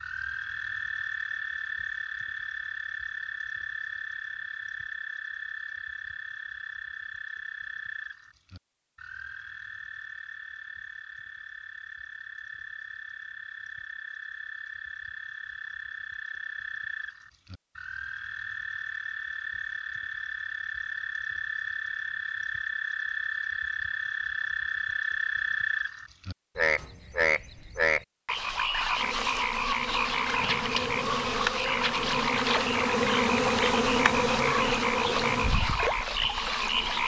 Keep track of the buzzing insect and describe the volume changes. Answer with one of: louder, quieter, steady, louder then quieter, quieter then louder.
louder then quieter.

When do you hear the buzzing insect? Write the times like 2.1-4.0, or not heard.
28.9-37.0.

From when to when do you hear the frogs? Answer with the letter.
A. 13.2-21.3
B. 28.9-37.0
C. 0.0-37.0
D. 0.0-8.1
C.